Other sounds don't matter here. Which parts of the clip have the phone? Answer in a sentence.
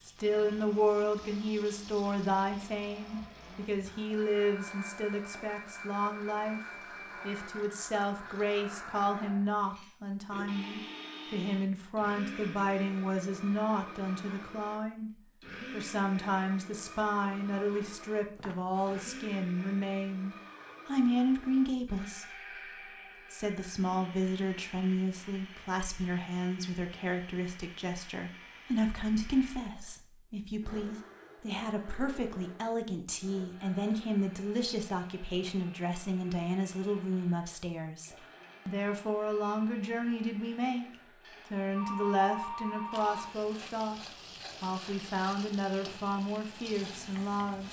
You can hear the phone from 18.4 to 19.1 s and from 41.2 to 43.4 s.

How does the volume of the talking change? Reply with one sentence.
The loudness of the talking stays about the same.